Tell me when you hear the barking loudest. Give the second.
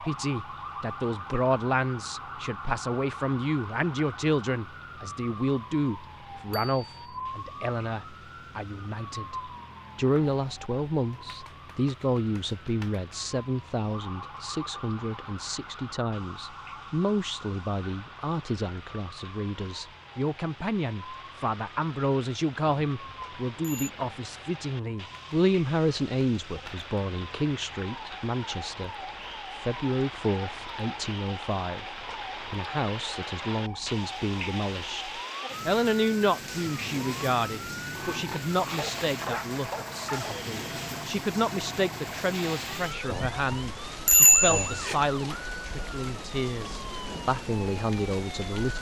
39 s.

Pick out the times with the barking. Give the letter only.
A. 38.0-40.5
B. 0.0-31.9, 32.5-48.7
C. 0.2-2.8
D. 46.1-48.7
A.